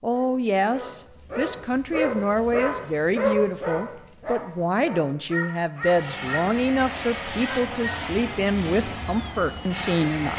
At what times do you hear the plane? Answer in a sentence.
You can hear the plane from 5.8 to 10.3 s.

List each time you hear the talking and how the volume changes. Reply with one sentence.
You can hear the talking from 0.0 to 10.3 s, at a steady volume.